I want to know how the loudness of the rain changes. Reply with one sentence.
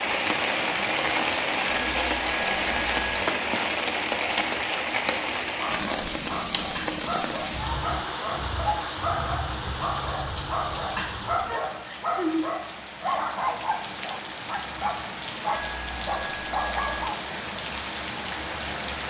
The loudness of the rain goes down.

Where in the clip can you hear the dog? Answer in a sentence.
You can hear the dog from 5.5 to 17.2 s.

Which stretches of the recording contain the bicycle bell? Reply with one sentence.
You can hear the bicycle bell from 1.6 to 3.2 s and from 15.5 to 17.1 s.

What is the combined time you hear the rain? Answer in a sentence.
The rain can be heard for 19 seconds in total.